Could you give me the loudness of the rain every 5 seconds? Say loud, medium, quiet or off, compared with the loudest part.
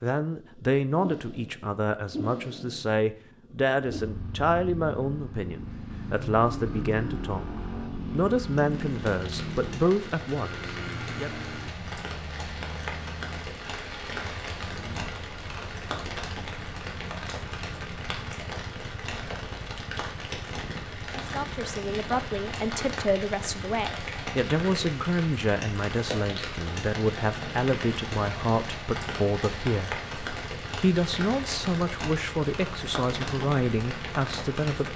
off, medium, loud, loud, loud, loud, loud.